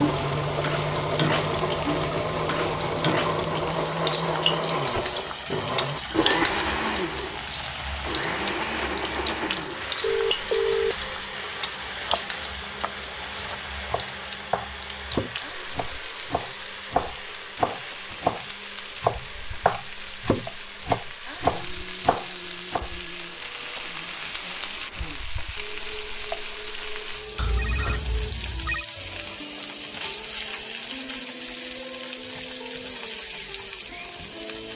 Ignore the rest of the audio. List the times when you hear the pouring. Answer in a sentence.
You can't hear the pouring here.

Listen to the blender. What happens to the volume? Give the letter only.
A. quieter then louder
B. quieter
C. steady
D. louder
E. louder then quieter
B.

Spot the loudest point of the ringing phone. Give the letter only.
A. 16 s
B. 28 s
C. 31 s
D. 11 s
D.